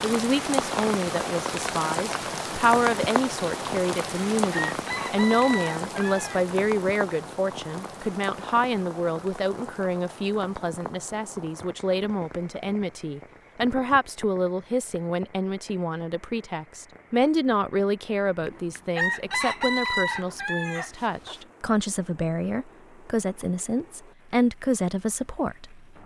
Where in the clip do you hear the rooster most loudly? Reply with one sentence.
The loudest moment of the rooster is at 20 seconds.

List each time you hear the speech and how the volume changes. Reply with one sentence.
The speech can be heard from 0.0 to 26.0 s, at a steady volume.